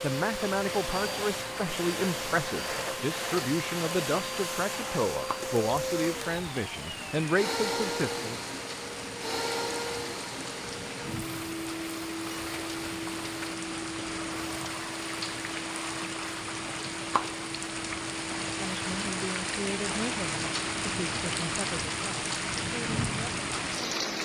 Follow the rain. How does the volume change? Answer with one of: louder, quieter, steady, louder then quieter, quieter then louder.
louder.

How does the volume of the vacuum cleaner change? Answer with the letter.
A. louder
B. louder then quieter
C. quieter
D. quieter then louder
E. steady
C.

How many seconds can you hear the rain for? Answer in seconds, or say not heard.
24 s.